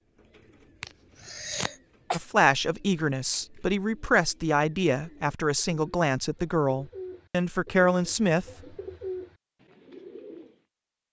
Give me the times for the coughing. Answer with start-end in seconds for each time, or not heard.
0.8-2.2.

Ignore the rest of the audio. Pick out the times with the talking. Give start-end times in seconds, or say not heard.
2.1-8.4.